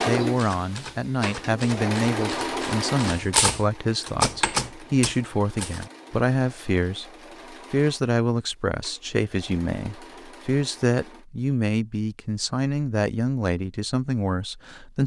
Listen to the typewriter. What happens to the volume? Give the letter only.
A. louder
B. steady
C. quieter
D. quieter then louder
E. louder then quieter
A.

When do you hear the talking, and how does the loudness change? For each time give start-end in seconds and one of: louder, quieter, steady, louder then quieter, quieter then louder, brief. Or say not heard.
0.1-15.0 steady.